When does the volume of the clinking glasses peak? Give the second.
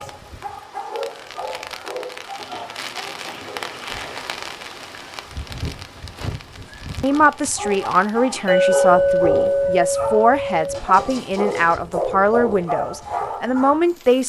9 s.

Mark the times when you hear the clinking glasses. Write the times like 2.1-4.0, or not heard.
8.4-10.8.